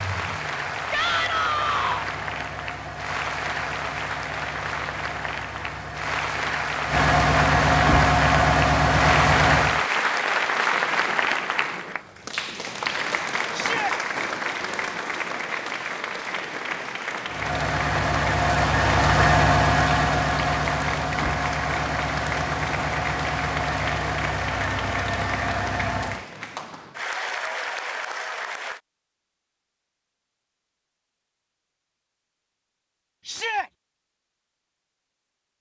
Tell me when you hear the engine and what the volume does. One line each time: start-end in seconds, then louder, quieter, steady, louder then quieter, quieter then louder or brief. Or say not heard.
0.0-9.8 louder
17.2-26.2 quieter.